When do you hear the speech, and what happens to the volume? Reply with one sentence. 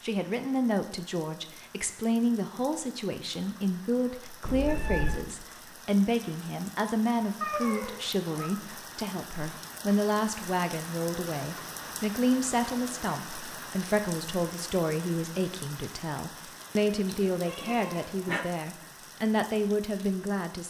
The speech can be heard from 0.0 to 20.6 s, at a steady volume.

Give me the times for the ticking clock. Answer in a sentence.
The ticking clock can't be heard in this clip.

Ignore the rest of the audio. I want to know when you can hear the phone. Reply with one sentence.
You can't hear the phone here.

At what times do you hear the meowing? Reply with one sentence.
The meowing can be heard from 4.5 to 5.2 s, from 7.4 to 8.5 s and from 17.1 to 18.4 s.